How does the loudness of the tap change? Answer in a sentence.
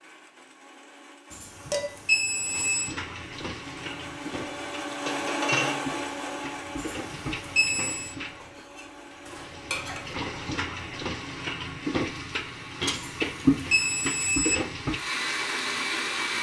The loudness of the tap goes up.